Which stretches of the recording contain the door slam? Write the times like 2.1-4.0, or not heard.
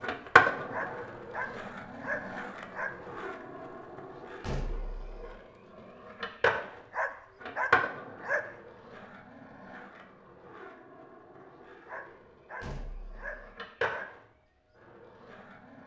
4.4-5.3, 12.6-13.6.